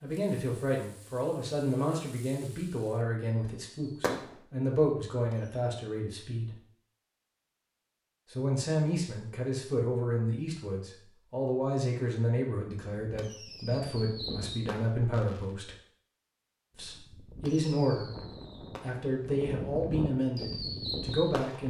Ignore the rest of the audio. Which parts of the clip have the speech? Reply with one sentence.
The speech can be heard from 0.0 to 6.6 s, from 8.3 to 15.8 s and from 16.8 to 21.6 s.